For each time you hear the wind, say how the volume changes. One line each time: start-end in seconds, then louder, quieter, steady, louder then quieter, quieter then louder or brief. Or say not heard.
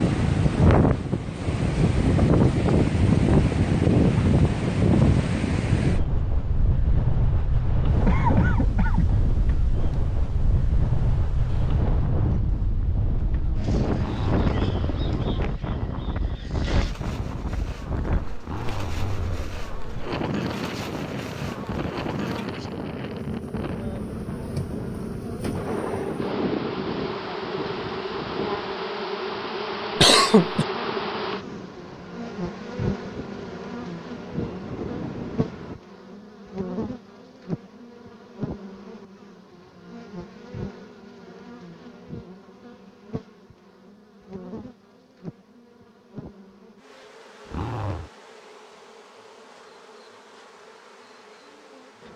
0.0-35.8 quieter.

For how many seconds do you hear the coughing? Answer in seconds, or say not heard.
2 s.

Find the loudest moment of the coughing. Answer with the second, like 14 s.
30 s.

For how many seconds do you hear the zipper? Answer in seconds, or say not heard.
3 s.